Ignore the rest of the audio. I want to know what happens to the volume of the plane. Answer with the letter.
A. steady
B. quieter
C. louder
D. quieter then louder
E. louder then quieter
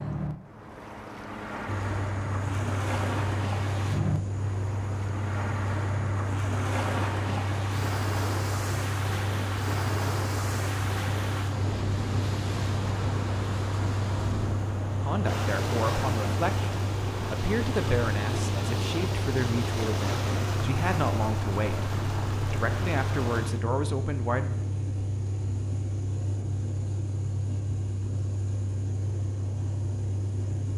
A.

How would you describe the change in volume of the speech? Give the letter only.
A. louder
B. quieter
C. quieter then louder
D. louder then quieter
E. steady
E.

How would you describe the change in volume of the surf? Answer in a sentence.
The volume of the surf stays about the same.